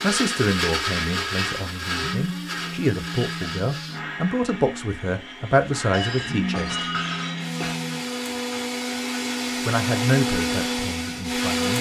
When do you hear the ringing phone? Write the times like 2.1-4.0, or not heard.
2.0-4.2, 6.2-8.1.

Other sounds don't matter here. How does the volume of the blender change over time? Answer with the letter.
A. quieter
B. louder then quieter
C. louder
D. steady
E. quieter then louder
E.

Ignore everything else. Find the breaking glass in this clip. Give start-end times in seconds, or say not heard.
5.9-7.8.